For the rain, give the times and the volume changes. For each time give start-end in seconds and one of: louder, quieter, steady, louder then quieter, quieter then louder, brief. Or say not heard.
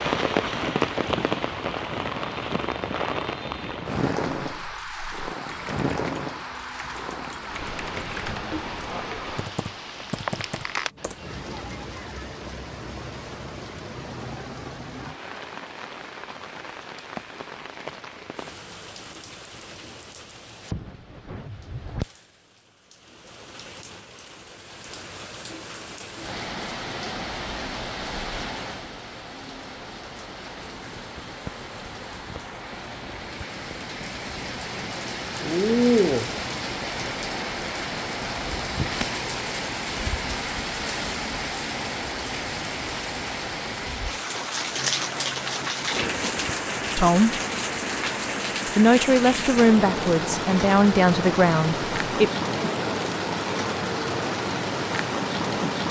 0.0-55.8 quieter then louder.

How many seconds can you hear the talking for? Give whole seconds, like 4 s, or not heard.
4 s.